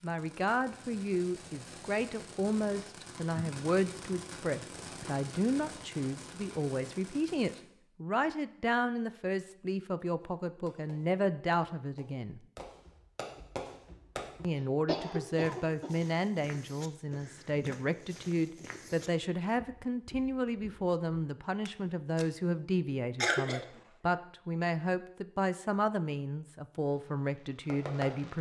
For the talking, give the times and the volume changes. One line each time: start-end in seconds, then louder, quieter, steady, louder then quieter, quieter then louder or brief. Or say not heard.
0.0-12.4 steady
14.4-28.3 steady.